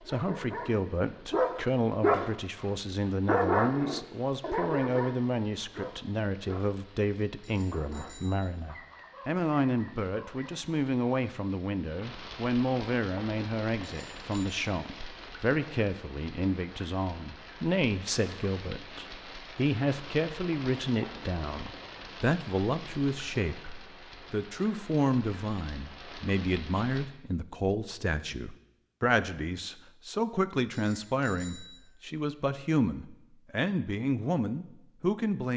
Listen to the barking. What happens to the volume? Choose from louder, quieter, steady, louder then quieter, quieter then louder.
quieter.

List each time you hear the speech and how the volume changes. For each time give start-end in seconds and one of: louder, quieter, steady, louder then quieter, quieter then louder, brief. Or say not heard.
0.1-35.5 steady.